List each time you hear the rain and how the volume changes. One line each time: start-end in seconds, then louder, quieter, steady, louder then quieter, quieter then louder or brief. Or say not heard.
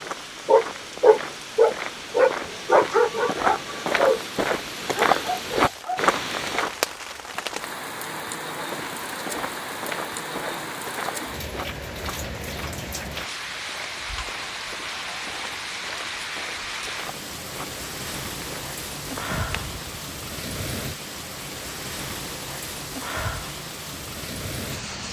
0.0-25.0 louder.